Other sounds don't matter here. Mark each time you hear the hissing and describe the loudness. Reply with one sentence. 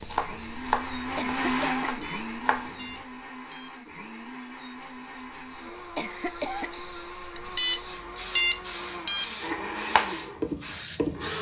The hissing can be heard from 0.0 to 11.3 s, getting quieter then louder.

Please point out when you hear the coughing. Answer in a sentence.
You can hear the coughing from 1.1 to 2.0 s and from 6.0 to 6.8 s.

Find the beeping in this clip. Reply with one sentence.
The beeping can be heard from 2.0 to 3.7 s and from 7.3 to 9.2 s.